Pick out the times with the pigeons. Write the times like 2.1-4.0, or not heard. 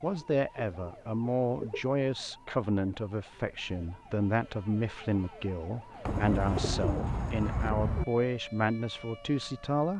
0.2-1.9, 6.0-8.1.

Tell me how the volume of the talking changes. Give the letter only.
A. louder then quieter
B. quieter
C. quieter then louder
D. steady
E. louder
D.